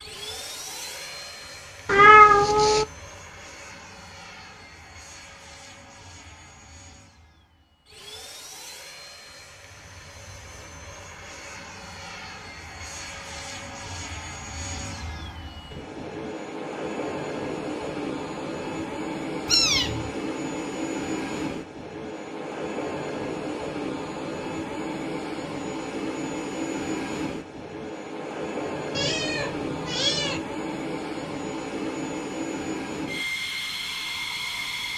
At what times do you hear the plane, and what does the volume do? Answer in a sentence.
You can hear the plane from 0.0 to 34.9 s, getting louder.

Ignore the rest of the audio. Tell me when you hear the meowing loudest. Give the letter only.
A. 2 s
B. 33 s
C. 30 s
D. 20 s
A.